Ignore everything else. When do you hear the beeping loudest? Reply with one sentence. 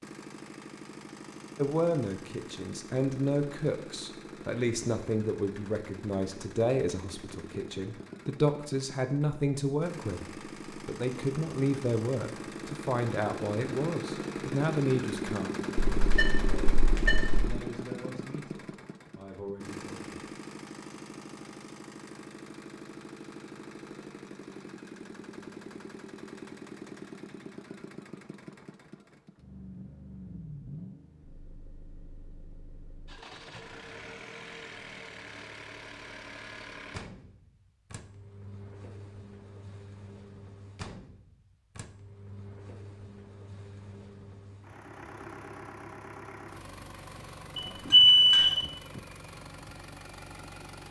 The volume of the beeping peaks at 48 seconds.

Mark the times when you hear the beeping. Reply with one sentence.
The beeping can be heard from 15.9 to 17.6 s and from 47.5 to 48.6 s.